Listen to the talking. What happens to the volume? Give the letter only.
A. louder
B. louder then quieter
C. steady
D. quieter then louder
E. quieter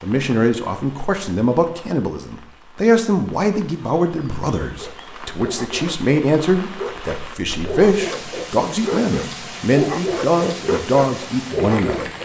C.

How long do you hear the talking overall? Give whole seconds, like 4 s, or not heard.
12 s.